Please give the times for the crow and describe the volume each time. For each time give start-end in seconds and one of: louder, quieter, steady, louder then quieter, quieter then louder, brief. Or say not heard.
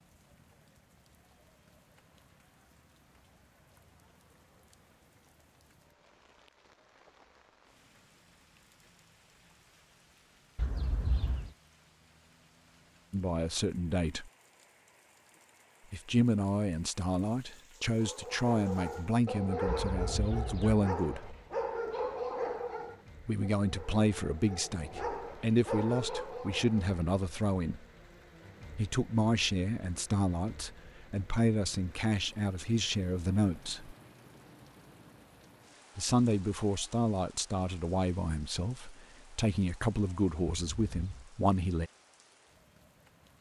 not heard.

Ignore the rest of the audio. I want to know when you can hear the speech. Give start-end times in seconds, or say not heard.
13.1-14.3, 15.9-21.4, 23.2-27.9, 28.8-34.0, 36.0-41.9.